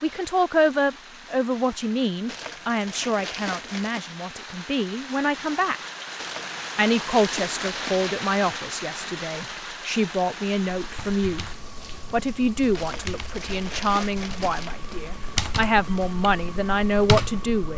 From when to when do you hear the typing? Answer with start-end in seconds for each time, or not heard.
10.8-17.7.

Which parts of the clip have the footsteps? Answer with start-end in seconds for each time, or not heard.
not heard.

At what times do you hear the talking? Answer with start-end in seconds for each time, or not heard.
0.0-5.8, 6.8-11.4, 12.1-17.7.